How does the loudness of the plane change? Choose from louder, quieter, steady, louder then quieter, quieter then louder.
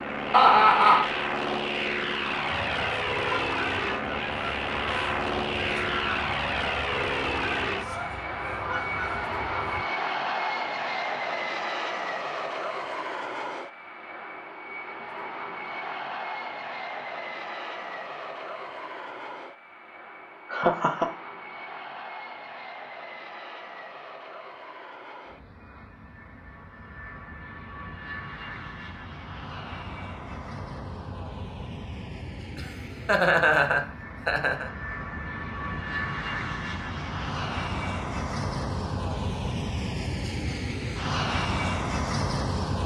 quieter then louder.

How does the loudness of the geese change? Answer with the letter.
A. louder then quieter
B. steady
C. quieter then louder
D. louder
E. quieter
B.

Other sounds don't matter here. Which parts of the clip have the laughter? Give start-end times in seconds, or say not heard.
0.3-1.1, 20.5-21.1, 32.5-34.7.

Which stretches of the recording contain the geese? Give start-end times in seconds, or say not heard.
2.5-9.8.